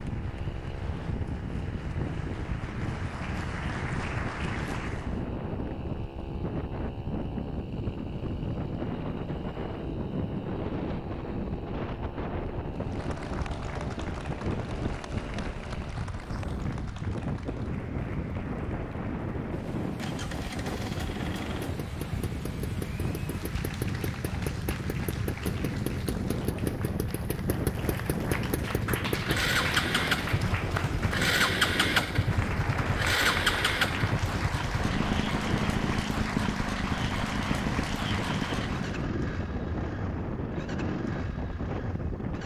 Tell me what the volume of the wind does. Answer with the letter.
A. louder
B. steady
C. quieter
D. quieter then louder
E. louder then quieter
B.